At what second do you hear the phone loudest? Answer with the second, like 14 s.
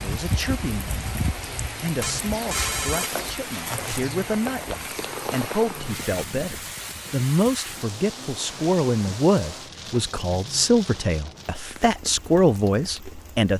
3 s.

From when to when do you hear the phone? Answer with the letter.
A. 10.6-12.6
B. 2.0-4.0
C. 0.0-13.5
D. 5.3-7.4
B.